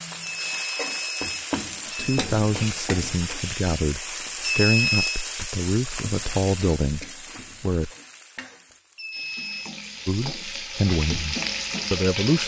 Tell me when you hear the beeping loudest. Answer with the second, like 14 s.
5 s.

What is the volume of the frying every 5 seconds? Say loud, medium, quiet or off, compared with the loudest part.
loud, medium, loud.